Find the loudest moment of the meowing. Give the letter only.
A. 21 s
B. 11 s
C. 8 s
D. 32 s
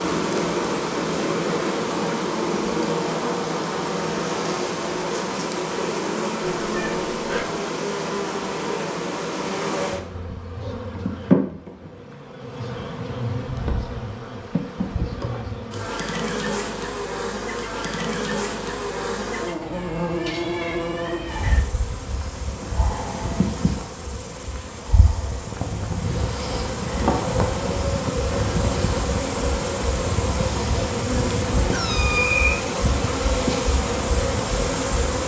D.